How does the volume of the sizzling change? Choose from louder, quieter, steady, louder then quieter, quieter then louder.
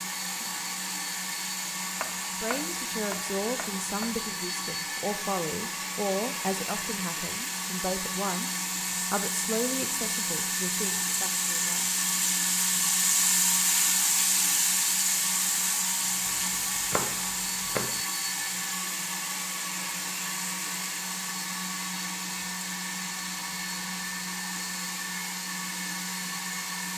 louder then quieter.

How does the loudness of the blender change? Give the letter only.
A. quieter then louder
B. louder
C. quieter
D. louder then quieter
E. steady
E.